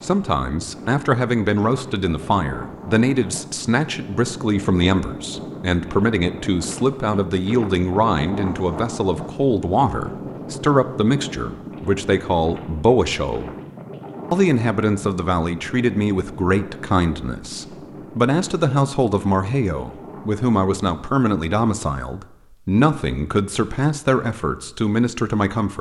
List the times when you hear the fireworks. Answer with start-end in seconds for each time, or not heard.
not heard.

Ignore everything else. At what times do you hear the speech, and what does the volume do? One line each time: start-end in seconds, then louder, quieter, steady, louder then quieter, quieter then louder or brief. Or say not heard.
0.0-13.5 steady
14.3-25.7 steady.